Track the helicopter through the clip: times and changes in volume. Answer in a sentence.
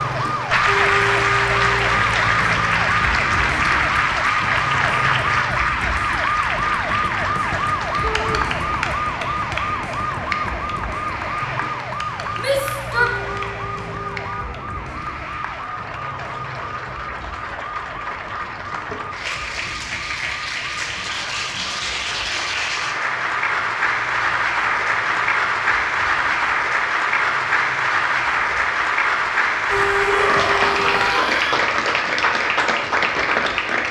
You can't hear the helicopter here.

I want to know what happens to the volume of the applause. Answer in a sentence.
The volume of the applause goes down, then up.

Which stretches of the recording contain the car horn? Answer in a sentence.
You can hear the car horn from 0.7 to 1.9 s, from 12.9 to 14.4 s and from 29.6 to 31.2 s.